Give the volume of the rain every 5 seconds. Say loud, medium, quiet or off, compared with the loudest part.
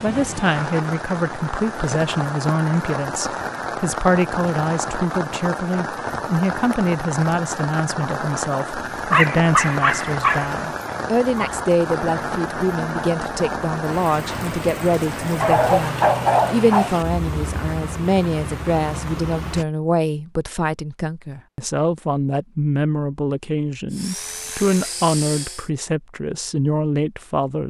loud, loud, loud, loud, off, off.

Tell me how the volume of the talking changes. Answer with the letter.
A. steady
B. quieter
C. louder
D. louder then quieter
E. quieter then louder
A.